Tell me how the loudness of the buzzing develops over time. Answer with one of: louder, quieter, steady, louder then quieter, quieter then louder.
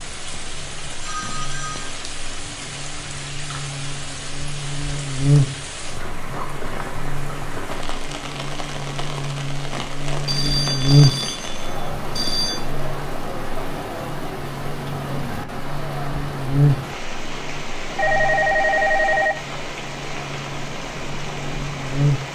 louder then quieter.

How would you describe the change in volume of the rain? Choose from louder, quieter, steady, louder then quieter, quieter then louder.
steady.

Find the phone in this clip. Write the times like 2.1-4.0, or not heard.
0.3-1.9, 10.2-12.7, 17.9-19.4.